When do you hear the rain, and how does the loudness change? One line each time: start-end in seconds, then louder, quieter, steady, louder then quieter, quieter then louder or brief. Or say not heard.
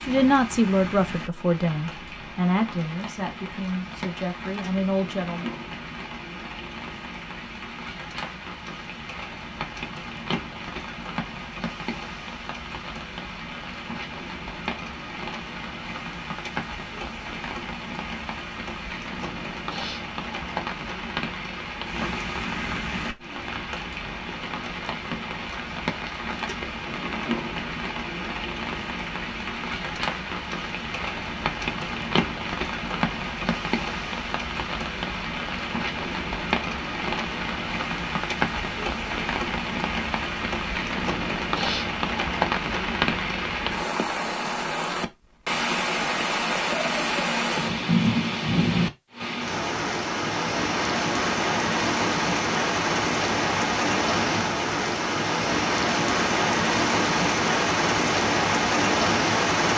0.0-59.7 louder.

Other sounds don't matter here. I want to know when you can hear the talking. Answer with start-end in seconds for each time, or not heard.
0.1-5.5.